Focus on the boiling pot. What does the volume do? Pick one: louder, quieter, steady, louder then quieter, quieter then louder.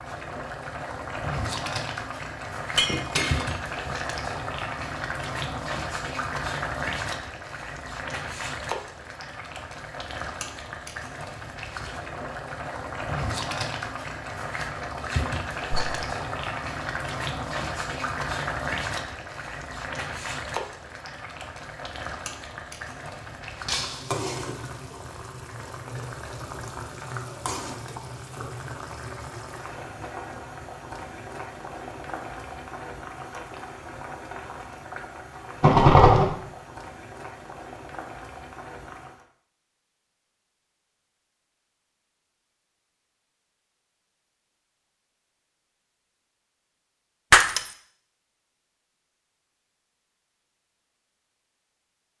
quieter.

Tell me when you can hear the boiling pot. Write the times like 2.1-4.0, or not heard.
0.0-39.2.